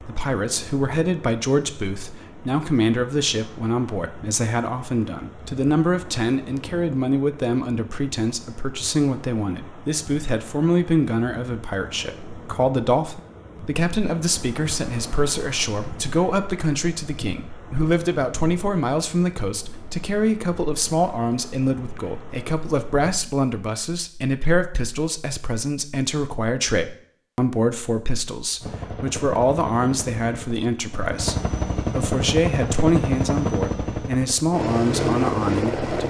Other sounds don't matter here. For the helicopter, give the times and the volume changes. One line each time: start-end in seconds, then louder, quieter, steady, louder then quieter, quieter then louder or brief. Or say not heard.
28.6-36.0 louder.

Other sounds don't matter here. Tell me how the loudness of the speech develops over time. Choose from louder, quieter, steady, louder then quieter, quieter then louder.
steady.